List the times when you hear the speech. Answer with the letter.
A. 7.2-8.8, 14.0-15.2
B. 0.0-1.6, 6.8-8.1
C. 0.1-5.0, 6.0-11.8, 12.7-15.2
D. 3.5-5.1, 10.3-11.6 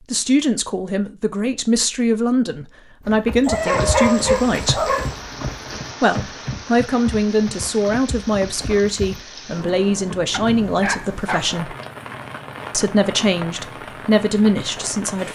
C.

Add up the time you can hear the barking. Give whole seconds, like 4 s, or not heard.
3 s.